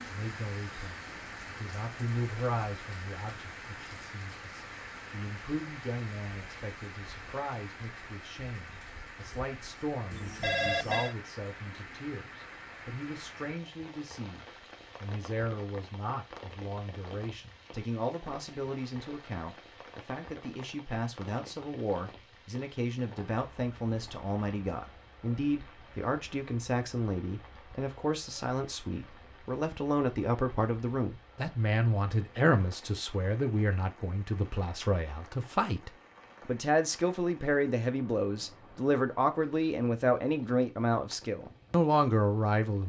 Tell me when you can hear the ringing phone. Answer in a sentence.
You can hear the ringing phone from 10.1 to 11.2 s.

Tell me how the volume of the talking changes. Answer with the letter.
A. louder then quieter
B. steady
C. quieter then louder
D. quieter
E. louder
E.